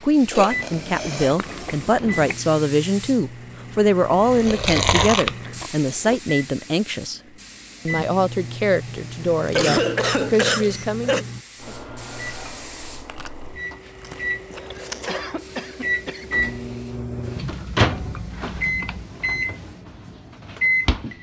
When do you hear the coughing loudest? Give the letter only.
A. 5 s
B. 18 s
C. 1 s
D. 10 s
D.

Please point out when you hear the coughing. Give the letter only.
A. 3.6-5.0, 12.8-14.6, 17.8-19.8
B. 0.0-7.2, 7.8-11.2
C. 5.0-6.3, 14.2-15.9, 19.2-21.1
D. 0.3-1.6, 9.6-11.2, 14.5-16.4
D.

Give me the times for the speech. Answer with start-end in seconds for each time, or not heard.
0.0-7.2, 7.8-11.2.